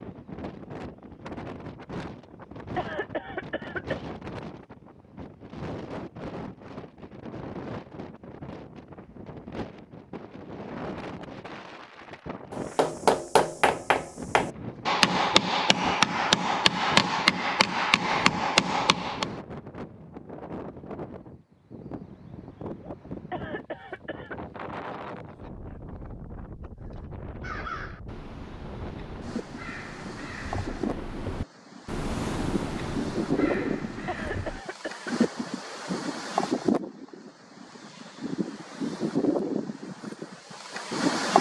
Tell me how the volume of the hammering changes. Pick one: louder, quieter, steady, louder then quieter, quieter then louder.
steady.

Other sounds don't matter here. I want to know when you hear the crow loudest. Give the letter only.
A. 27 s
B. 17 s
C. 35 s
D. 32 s
D.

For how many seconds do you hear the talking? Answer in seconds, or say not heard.
not heard.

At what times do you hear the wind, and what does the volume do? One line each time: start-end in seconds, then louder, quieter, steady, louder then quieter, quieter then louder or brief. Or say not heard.
0.0-41.3 louder.